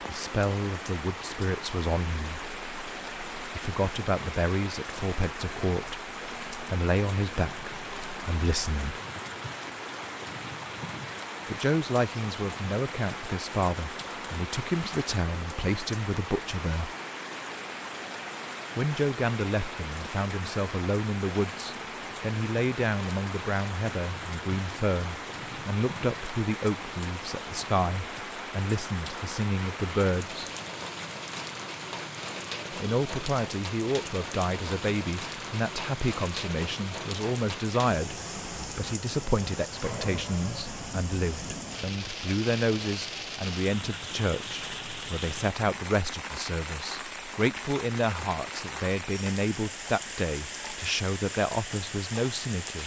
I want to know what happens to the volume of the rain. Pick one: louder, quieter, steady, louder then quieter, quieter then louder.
steady.